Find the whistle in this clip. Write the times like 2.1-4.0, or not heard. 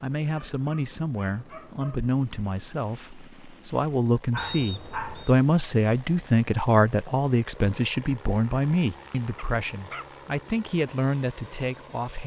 4.3-5.3.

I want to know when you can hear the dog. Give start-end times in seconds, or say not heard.
0.3-2.1, 4.3-5.2, 9.3-10.1.